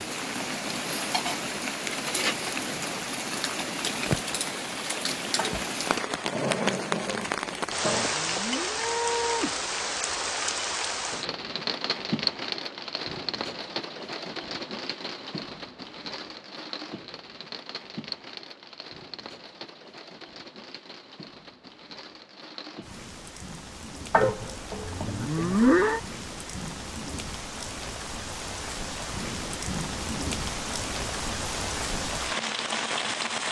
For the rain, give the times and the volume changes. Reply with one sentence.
The rain can be heard from 0.0 to 33.4 s, getting quieter then louder.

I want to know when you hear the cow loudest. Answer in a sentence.
The loudest moment of the cow is at 26 seconds.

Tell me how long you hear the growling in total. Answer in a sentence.
You can hear the growling for 4 seconds altogether.